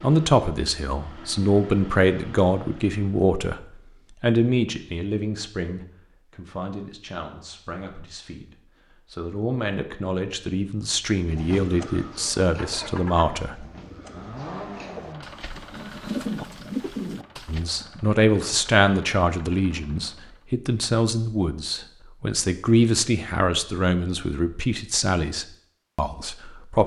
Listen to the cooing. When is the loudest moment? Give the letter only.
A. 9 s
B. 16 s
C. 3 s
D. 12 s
B.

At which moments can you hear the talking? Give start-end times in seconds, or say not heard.
0.0-3.6, 4.2-13.7, 17.4-26.8.